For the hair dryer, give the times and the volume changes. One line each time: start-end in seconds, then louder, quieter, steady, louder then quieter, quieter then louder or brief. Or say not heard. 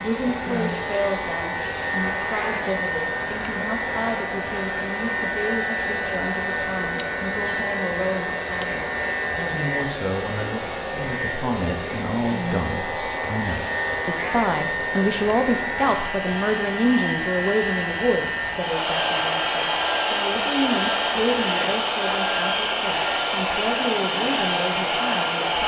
0.0-25.6 louder.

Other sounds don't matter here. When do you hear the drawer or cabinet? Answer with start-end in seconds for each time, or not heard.
not heard.